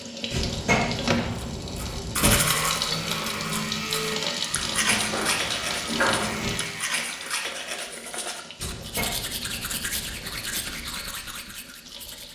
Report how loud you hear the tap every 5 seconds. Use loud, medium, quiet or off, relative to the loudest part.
loud, medium, quiet.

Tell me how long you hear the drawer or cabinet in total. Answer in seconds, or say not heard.
6 s.